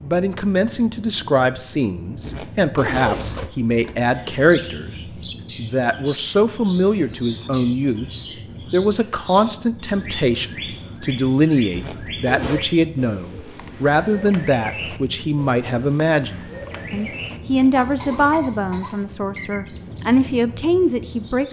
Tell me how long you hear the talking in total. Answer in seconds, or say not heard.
21 s.